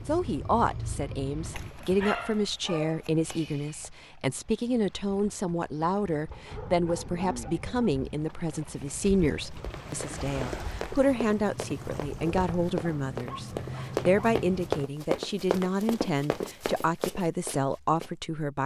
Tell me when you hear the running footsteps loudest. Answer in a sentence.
The loudest moment of the running footsteps is at 15 seconds.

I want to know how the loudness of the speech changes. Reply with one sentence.
The volume of the speech stays about the same.